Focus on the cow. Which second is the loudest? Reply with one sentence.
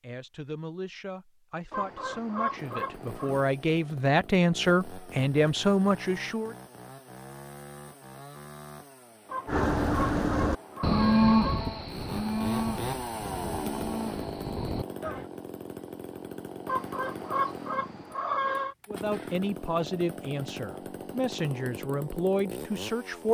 The loudest moment of the cow is at 11 seconds.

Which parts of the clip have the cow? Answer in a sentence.
You can hear the cow from 9.4 to 15.2 s.